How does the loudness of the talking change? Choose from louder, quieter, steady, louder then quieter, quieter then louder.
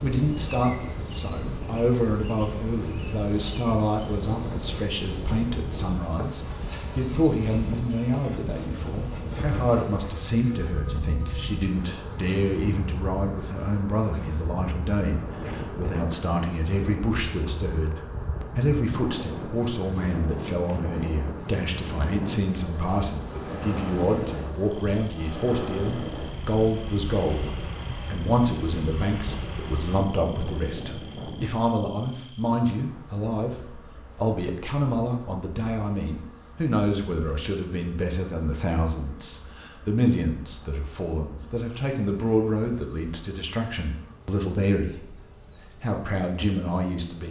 steady.